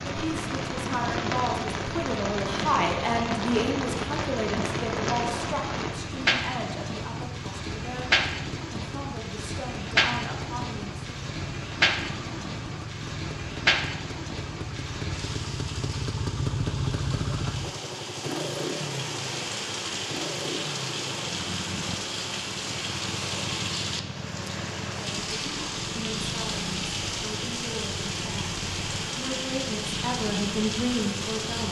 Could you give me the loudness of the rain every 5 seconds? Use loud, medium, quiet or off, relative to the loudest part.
loud, loud, loud, medium, loud, loud, loud.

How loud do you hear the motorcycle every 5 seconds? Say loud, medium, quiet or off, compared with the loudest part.
medium, medium, medium, loud, medium, medium, medium.